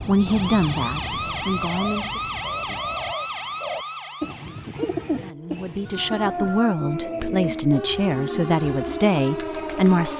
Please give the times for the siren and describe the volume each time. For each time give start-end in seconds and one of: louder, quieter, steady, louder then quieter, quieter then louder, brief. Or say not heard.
0.0-10.1 quieter then louder.